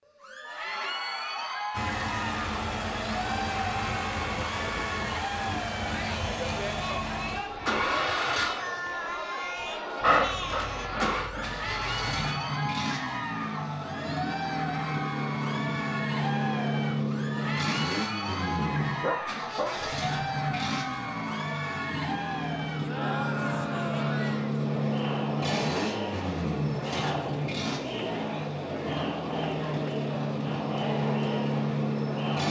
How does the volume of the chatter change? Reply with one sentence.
The volume of the chatter stays about the same.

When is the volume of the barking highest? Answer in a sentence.
The volume of the barking peaks at 10 seconds.